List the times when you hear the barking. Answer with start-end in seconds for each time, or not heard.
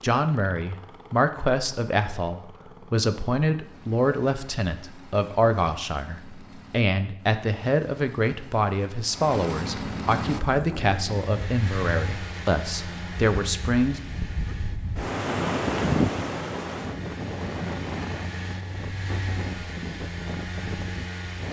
not heard.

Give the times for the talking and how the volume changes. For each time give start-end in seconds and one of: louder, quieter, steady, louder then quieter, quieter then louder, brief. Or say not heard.
0.0-14.0 steady.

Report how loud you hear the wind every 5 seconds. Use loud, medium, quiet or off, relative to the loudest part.
off, off, medium, loud, medium.